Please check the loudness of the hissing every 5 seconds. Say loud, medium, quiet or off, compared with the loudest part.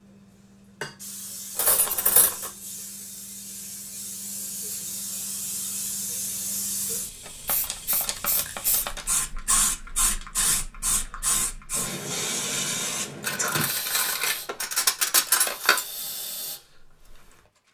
medium, loud, loud, medium.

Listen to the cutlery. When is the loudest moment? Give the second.
15 s.